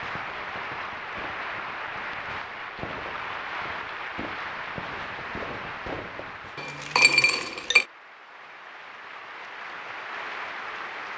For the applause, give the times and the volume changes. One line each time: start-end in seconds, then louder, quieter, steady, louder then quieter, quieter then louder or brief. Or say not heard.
0.0-11.1 quieter then louder.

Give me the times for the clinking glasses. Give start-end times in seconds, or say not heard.
6.5-7.8.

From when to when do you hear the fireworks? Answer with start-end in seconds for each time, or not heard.
0.0-6.5.